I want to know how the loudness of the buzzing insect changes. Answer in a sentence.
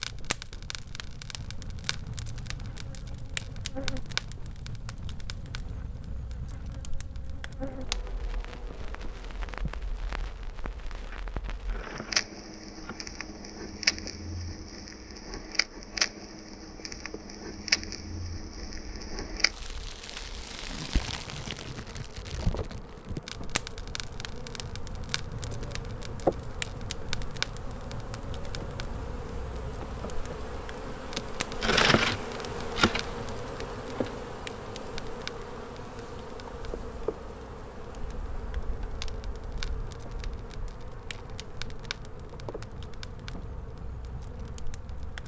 The loudness of the buzzing insect goes up, then down.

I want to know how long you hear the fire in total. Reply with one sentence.
The fire can be heard for 45 seconds in total.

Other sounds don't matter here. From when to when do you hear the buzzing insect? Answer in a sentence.
The buzzing insect can be heard from 0.0 to 45.2 s.